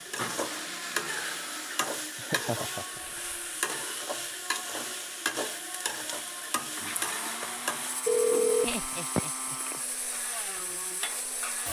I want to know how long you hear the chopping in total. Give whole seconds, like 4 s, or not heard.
not heard.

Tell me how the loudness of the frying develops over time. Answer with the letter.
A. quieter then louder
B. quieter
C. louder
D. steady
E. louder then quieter
B.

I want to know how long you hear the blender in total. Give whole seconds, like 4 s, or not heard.
7 s.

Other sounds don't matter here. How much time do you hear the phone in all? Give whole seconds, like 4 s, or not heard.
2 s.